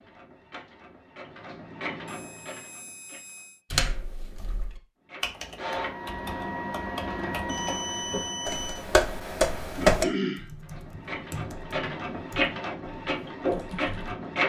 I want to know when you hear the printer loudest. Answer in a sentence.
The volume of the printer peaks at 14 seconds.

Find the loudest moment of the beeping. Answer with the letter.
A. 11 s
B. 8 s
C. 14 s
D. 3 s
B.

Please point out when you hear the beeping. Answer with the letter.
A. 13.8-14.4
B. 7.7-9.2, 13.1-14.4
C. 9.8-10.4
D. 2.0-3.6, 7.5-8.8
D.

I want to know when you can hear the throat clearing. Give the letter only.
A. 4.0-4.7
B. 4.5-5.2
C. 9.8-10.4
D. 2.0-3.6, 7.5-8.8
C.